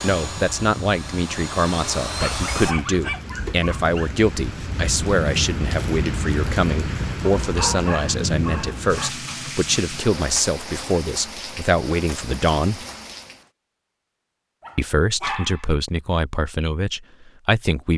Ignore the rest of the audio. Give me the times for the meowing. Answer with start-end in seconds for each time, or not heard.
not heard.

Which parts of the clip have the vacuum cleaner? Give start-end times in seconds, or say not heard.
0.0-2.8.